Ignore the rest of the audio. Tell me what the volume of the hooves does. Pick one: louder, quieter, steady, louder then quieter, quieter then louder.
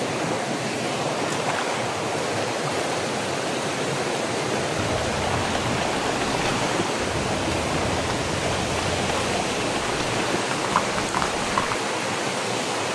steady.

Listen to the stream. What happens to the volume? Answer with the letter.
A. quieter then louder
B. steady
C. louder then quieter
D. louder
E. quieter
B.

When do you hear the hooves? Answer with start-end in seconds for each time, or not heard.
4.8-11.8.